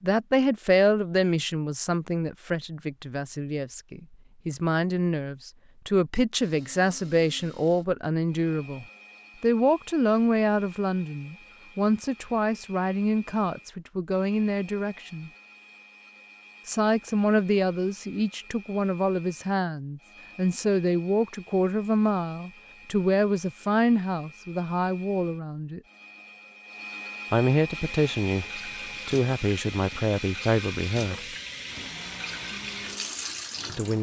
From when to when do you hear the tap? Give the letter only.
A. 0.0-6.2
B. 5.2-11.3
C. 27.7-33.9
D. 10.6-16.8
C.